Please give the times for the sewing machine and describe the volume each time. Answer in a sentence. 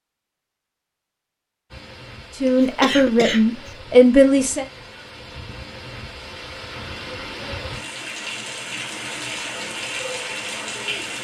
You can't hear the sewing machine here.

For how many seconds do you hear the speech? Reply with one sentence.
You can hear the speech for 2 seconds altogether.